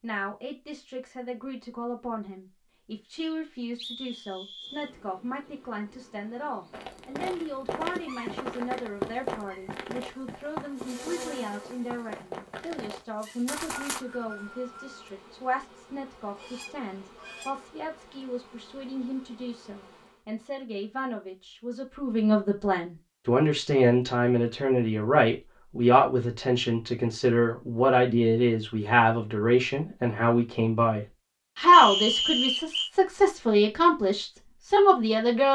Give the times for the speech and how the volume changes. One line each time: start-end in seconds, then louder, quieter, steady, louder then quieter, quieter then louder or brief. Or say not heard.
0.0-35.4 louder.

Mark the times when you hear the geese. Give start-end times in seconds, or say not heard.
16.3-17.8.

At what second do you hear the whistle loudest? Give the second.
32 s.